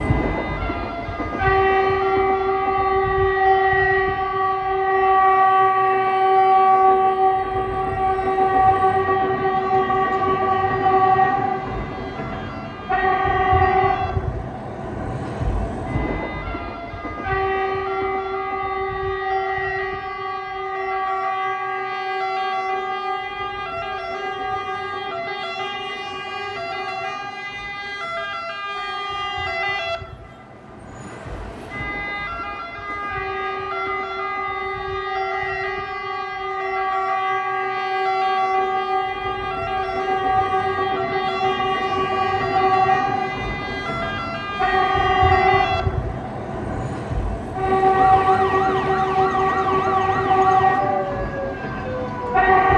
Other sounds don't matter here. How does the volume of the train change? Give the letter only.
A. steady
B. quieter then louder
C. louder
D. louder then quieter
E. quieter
B.